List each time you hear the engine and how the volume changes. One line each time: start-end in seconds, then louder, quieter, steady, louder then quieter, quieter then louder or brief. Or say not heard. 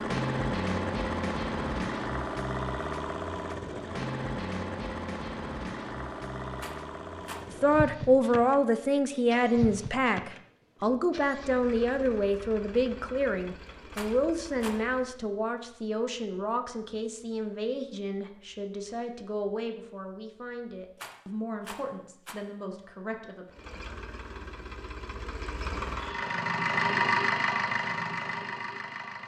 0.0-15.2 quieter
23.4-29.2 louder then quieter.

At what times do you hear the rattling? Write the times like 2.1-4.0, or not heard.
6.5-7.5, 13.9-14.8, 20.9-22.4.